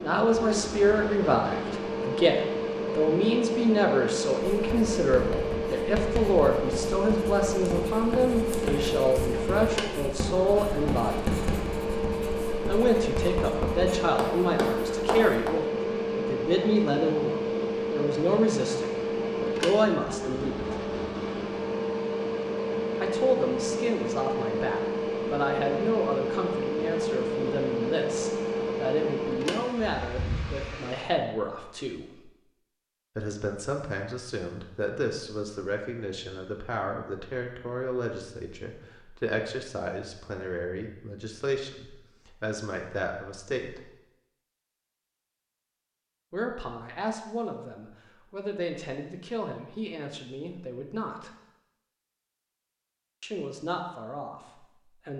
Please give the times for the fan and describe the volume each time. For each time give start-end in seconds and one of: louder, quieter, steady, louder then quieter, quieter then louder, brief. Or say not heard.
0.0-31.1 steady.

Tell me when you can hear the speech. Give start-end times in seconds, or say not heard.
0.0-11.3, 12.7-20.8, 23.0-32.3, 33.1-43.9, 46.3-51.4, 53.2-55.1.